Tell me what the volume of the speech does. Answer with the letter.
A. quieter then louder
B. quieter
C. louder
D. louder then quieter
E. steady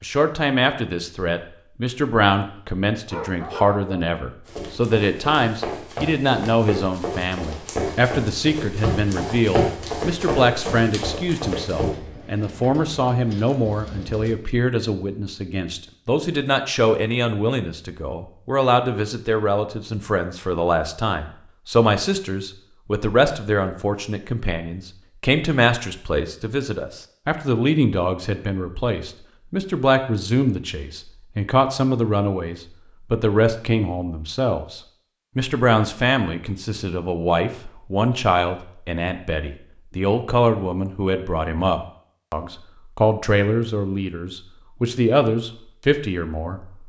E.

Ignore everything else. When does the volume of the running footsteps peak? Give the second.
10 s.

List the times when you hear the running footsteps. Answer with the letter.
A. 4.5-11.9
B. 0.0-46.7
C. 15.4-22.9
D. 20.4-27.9
A.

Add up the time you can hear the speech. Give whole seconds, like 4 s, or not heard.
47 s.